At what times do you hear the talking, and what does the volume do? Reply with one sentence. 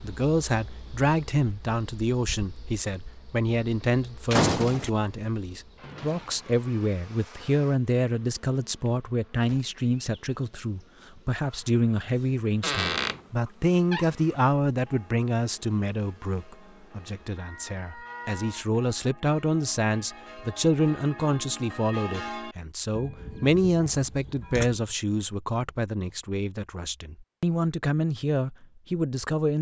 The talking can be heard from 0.0 to 29.5 s, at a steady volume.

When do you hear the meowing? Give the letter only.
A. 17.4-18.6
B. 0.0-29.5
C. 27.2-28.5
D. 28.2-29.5
A.